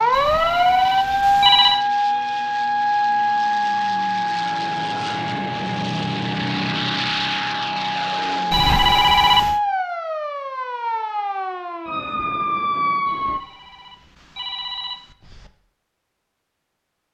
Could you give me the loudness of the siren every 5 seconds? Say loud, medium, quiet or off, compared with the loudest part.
loud, medium, medium, off.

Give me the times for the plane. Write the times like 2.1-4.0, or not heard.
0.0-9.1.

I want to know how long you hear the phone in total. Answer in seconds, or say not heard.
5 s.